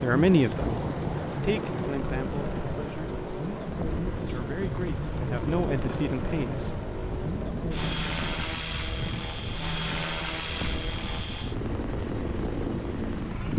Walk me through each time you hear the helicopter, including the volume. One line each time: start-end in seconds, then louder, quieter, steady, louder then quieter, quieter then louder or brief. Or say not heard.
0.0-13.5 steady.